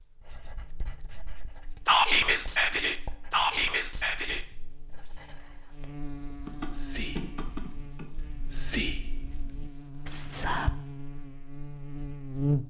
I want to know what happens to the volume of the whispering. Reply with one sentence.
The volume of the whispering goes down, then up.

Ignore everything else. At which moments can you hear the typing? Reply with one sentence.
The typing can be heard from 6.5 to 8.1 s.